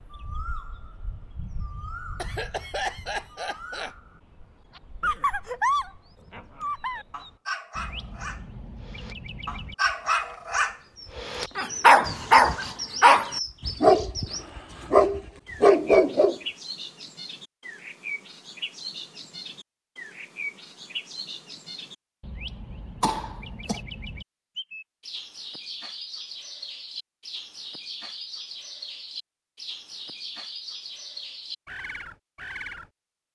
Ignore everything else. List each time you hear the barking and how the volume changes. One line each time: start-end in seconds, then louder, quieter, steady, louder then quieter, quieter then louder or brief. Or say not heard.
5.0-16.4 quieter then louder.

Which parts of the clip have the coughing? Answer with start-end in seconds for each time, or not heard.
2.1-4.0, 12.0-12.8, 23.0-23.8.